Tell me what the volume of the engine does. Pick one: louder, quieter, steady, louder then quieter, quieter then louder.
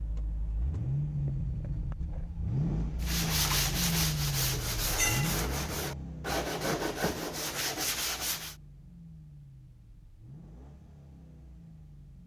quieter.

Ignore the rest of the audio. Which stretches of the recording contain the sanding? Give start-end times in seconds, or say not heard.
3.0-8.6.